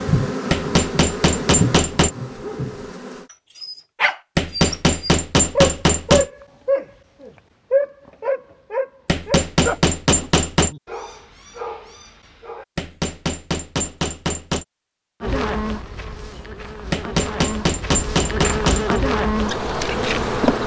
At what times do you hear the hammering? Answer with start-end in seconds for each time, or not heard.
0.5-2.1, 4.3-6.2, 9.1-10.7, 12.8-14.7, 16.9-19.0.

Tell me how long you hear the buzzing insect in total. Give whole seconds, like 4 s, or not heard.
9 s.